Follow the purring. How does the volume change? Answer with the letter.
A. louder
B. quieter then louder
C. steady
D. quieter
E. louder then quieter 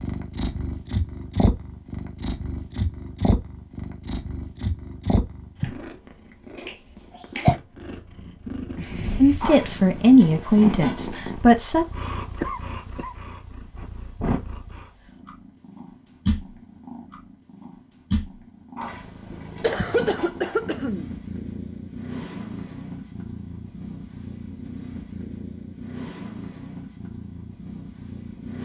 D.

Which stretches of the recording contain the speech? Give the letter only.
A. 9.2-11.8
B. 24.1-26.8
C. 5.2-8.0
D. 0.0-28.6
A.